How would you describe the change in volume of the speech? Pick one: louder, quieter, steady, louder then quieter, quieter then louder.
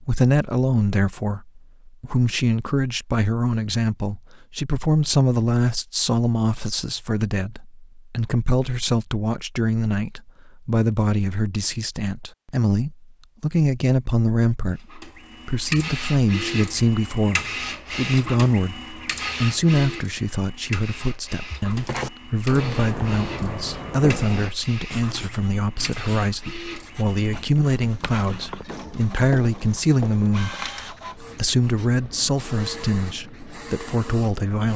steady.